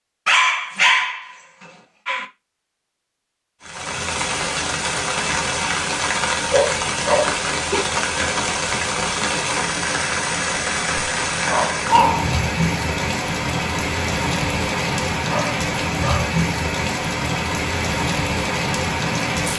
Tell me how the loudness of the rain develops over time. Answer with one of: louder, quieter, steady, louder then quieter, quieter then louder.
steady.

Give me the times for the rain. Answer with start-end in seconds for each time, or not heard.
3.6-19.5.